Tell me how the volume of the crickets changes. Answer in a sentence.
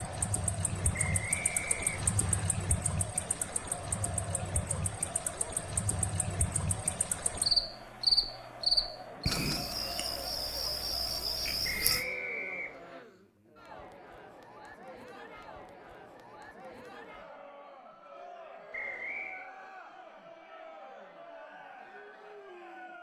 The loudness of the crickets goes up, then down.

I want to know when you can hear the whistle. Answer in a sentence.
You can hear the whistle from 0.9 to 2.5 s, from 11.6 to 13.1 s and from 18.7 to 19.5 s.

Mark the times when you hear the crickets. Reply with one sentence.
The crickets can be heard from 0.0 to 12.1 s.